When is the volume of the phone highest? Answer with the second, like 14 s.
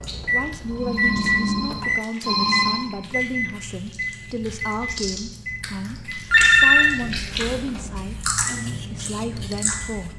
7 s.